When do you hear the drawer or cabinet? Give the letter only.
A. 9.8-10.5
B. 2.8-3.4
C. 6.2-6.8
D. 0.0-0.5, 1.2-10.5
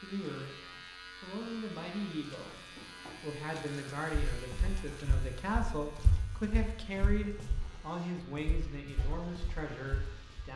B.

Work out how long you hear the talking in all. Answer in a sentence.
The talking can be heard for 10 seconds in total.